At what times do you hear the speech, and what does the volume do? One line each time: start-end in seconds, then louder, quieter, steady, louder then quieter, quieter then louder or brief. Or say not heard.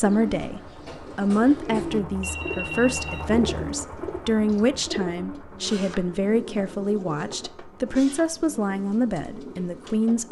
0.0-10.2 steady.